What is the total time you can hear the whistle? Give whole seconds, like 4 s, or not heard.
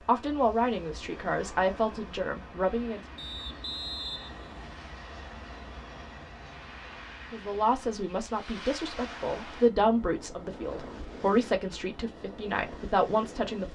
2 s.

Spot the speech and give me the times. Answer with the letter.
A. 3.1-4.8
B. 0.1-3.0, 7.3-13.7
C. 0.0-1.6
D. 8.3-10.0
B.